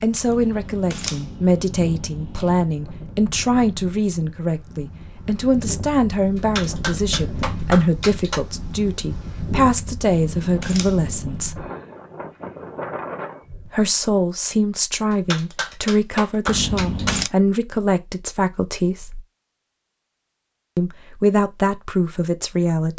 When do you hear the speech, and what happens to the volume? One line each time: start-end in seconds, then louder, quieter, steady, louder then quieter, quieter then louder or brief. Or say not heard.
0.0-11.7 steady
13.7-19.2 steady
20.8-22.9 brief.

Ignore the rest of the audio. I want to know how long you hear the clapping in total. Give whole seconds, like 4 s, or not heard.
4 s.